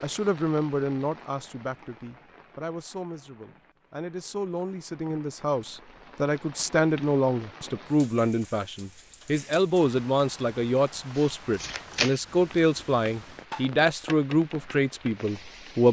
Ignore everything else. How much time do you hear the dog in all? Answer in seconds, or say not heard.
not heard.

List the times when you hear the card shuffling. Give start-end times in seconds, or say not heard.
11.2-12.2.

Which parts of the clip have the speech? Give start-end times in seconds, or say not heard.
0.0-15.8.